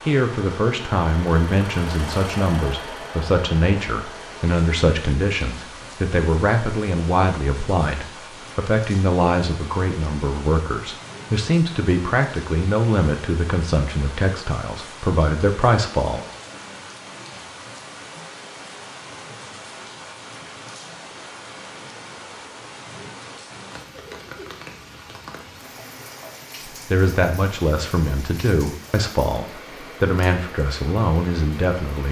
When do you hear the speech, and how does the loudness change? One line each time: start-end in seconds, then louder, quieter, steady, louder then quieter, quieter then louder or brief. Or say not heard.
0.1-16.2 steady
26.7-32.0 steady.